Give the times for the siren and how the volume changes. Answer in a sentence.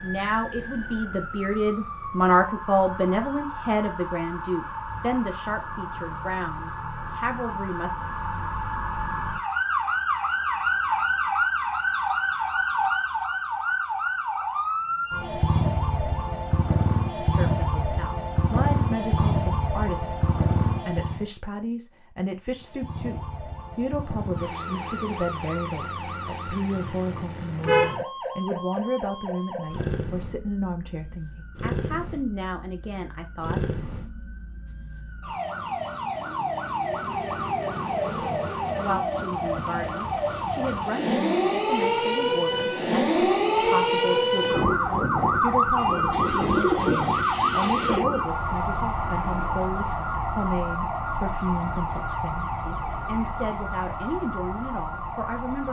The siren can be heard from 0.0 to 21.2 s, getting louder; and from 22.6 to 55.6 s, getting louder then quieter.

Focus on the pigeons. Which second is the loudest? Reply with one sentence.
The loudest moment of the pigeons is at 47 seconds.